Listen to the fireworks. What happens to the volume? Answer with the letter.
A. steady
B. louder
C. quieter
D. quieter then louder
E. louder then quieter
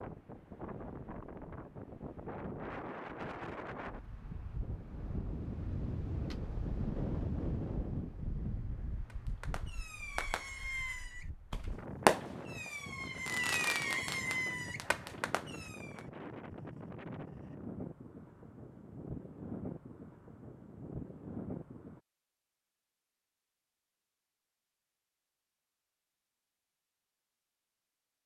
E.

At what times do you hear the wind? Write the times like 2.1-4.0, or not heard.
0.0-22.0.